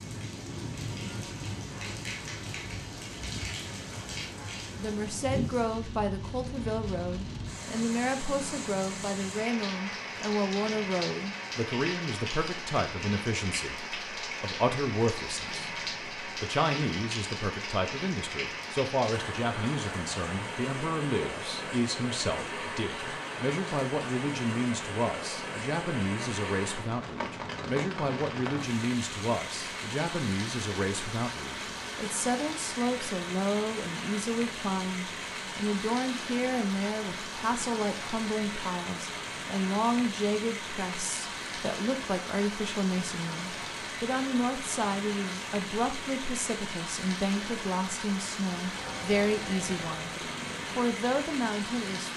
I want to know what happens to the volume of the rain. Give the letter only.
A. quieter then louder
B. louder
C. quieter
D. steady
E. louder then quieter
D.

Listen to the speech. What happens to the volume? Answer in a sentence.
The volume of the speech stays about the same.